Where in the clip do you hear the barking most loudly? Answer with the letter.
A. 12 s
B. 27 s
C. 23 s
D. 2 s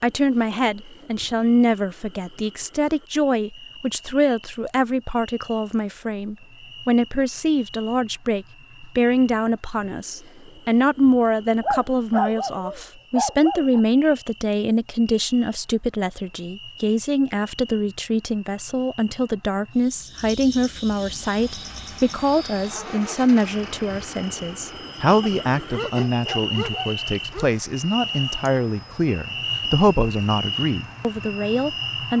A.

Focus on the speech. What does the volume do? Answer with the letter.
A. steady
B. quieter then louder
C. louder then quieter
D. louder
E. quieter
A.